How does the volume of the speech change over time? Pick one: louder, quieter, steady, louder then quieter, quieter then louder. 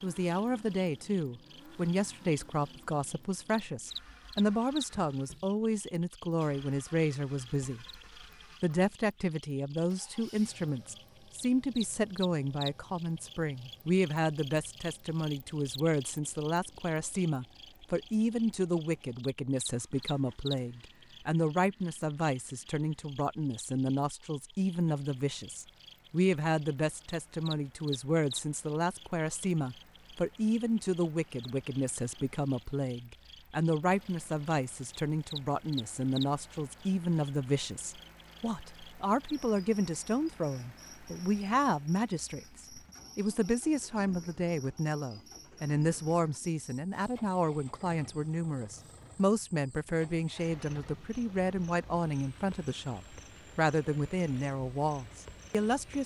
steady.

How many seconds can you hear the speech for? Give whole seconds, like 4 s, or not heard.
55 s.